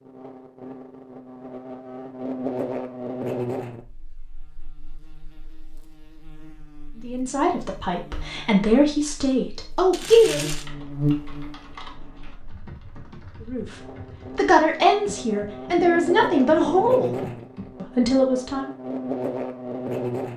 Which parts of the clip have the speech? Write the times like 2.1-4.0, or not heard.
7.0-10.5, 13.4-18.7.